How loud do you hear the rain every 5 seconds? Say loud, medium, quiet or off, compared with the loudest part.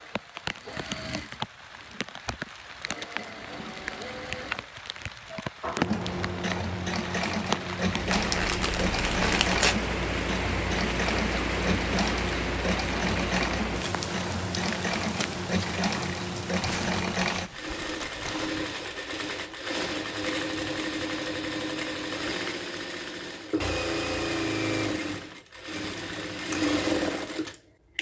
medium, loud, loud, medium, off, off.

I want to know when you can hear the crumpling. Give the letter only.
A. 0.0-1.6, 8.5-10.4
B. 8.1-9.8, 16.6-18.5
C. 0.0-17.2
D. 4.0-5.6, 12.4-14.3
B.